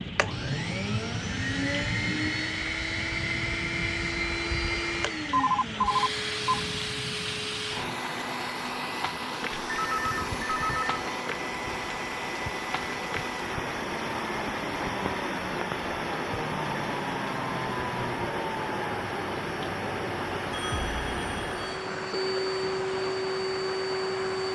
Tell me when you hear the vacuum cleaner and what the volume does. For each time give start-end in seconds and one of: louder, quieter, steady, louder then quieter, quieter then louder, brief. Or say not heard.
0.0-24.4 steady.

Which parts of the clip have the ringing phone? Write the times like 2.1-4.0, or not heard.
5.3-6.6, 9.6-10.9, 20.5-21.6.